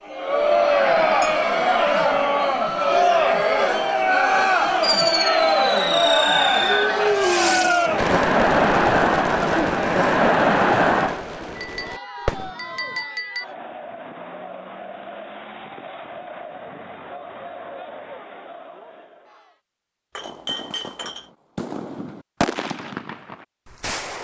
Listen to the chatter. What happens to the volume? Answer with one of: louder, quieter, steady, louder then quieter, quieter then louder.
quieter.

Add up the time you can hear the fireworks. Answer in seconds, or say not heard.
12 s.